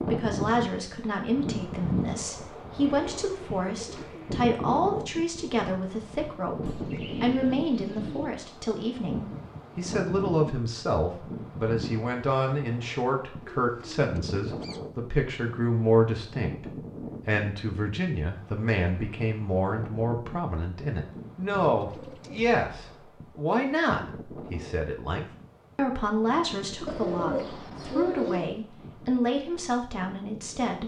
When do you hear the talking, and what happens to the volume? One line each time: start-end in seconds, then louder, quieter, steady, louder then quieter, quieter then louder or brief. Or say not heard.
0.1-30.8 steady.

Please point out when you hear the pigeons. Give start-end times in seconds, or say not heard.
3.0-4.5, 6.6-8.3, 13.4-14.9, 21.7-23.0, 26.9-28.6.